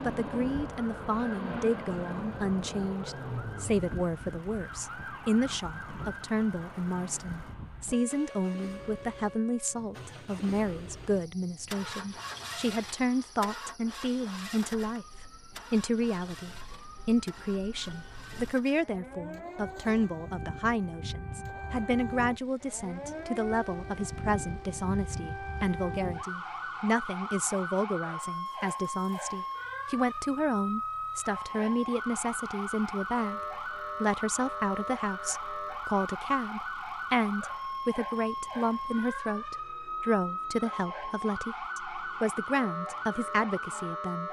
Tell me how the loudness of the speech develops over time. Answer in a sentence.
The volume of the speech stays about the same.